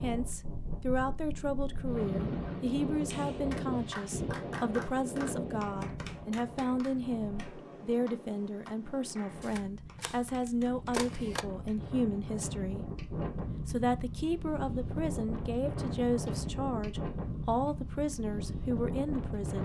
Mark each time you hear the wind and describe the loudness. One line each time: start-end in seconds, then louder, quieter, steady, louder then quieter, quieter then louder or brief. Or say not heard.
0.0-19.6 quieter then louder.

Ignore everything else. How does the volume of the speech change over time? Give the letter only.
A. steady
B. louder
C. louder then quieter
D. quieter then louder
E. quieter
A.